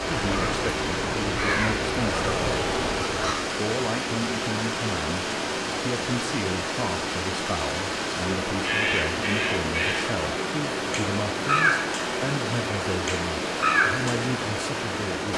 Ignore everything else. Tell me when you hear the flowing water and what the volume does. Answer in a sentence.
The flowing water can be heard from 0.0 to 15.3 s, at a steady volume.